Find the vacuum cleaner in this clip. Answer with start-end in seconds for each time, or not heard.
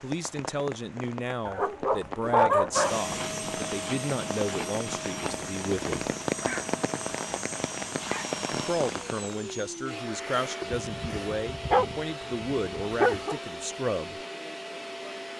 2.7-15.3.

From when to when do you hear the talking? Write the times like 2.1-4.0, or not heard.
0.0-6.1, 8.5-14.2.